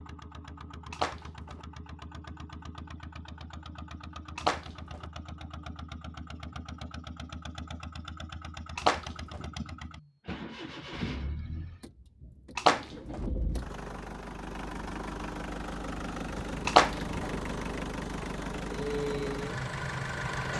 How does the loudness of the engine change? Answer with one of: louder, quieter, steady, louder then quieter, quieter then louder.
louder.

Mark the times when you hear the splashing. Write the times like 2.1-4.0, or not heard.
0.9-1.6, 4.3-5.0, 8.8-9.4, 12.6-13.2, 16.6-17.4.